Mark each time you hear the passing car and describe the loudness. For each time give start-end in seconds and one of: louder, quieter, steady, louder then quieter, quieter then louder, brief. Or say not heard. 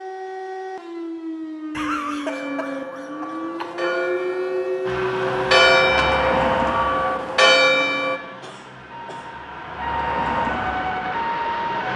4.8-11.9 quieter then louder.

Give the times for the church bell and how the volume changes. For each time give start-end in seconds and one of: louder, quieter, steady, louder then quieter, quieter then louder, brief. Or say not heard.
2.2-8.2 louder.